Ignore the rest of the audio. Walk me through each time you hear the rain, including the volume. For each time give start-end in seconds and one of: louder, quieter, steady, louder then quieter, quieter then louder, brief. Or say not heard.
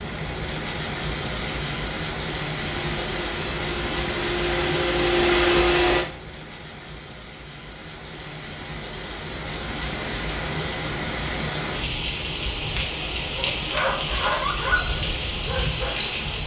0.0-16.4 quieter then louder.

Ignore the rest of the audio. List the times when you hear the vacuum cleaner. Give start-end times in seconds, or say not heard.
2.5-6.1.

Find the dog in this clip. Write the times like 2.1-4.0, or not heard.
13.2-16.4.